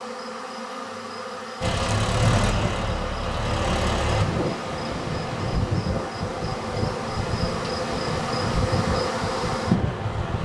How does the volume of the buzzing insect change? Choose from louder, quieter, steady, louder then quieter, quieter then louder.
louder.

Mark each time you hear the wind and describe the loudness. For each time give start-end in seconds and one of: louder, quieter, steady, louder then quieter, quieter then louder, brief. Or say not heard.
3.6-10.4 steady.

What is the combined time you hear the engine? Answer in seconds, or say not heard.
3 s.